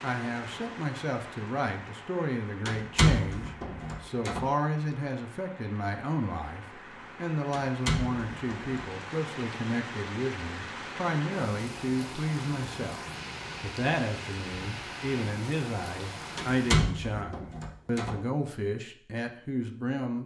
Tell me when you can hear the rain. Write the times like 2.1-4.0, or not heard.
0.0-16.8.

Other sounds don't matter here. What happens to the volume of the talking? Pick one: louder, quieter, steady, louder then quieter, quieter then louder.
steady.